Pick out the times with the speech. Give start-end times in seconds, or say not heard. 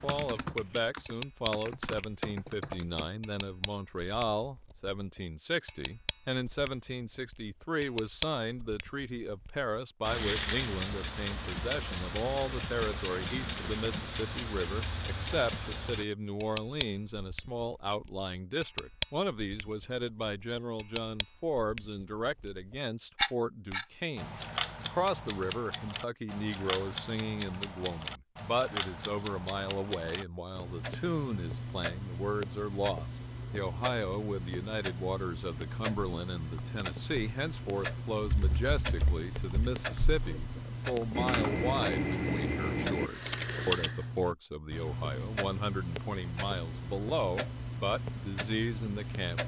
0.0-49.4.